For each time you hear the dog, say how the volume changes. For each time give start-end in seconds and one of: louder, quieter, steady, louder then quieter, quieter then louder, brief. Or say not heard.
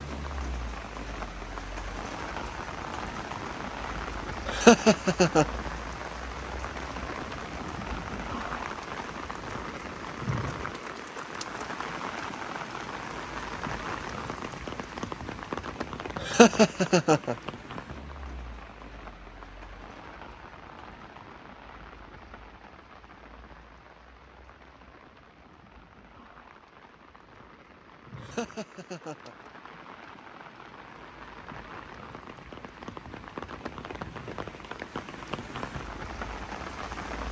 not heard.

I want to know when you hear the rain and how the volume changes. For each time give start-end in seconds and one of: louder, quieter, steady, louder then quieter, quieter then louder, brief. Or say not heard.
0.0-37.2 quieter then louder.